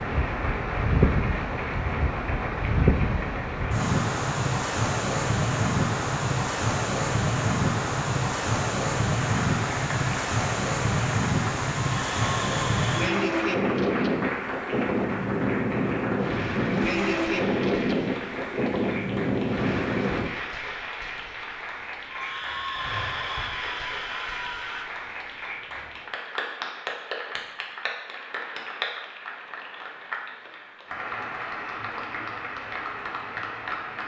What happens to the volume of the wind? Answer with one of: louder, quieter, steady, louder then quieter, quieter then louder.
steady.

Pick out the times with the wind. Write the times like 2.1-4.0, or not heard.
0.0-20.3.